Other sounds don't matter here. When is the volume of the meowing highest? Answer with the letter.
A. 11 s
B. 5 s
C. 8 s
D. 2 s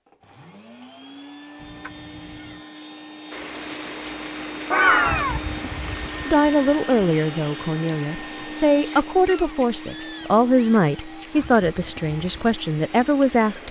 B.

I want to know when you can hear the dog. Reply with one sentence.
You can't hear the dog here.